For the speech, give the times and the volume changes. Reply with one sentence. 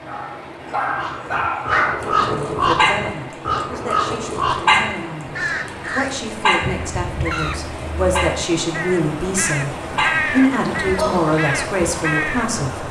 The speech can be heard from 2.2 to 12.8 s, getting louder.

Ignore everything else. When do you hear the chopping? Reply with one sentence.
You can't hear the chopping here.